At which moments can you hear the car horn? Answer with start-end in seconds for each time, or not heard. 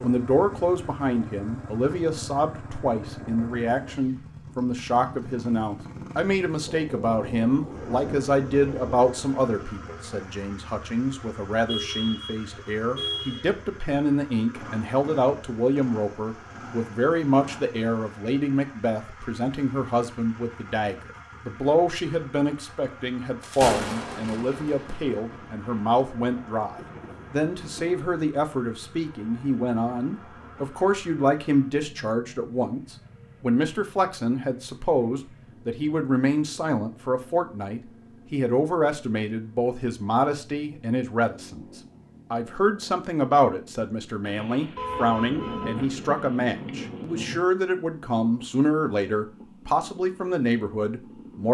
11.7-13.4, 44.8-45.8.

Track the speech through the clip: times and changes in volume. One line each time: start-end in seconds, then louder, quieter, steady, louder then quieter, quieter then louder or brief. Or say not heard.
0.0-41.6 steady
42.3-51.5 steady.